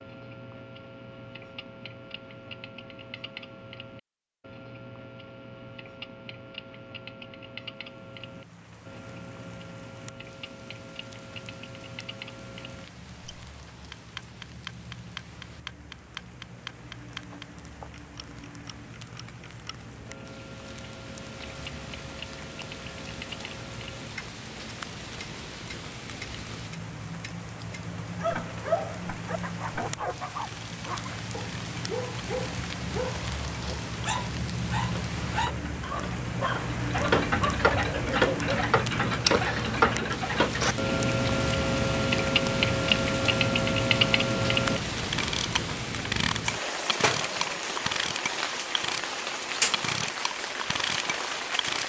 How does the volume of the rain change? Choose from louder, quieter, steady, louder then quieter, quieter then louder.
louder.